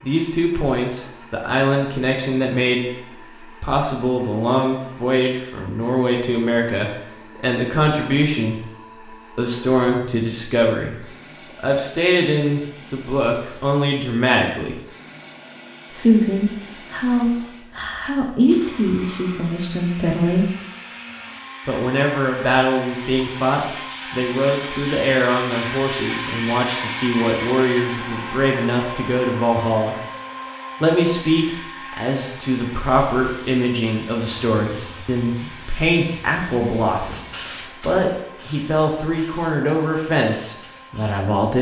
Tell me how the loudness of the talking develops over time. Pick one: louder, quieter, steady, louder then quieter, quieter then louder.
steady.